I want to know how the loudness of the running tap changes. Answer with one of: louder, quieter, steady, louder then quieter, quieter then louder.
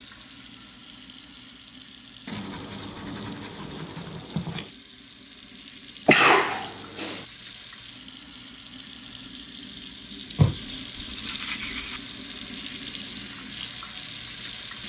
louder.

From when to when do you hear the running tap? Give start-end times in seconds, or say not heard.
0.0-14.8.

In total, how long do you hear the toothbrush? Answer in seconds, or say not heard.
4 s.